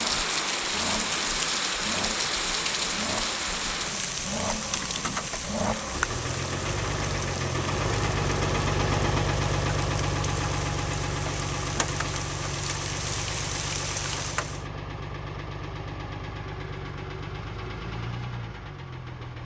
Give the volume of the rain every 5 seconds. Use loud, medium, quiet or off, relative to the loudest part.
loud, medium, medium, off.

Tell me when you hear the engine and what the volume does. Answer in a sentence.
You can hear the engine from 0.0 to 19.4 s, getting louder then quieter.